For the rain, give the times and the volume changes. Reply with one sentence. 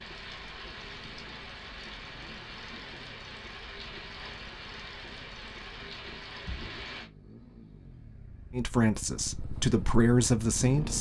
The rain can be heard from 0.0 to 7.1 s, at a steady volume.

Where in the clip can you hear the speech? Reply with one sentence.
You can hear the speech from 8.5 to 10.9 s.